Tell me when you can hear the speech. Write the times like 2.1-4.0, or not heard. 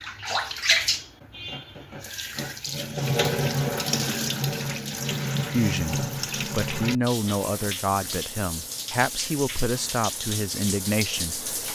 5.5-11.4.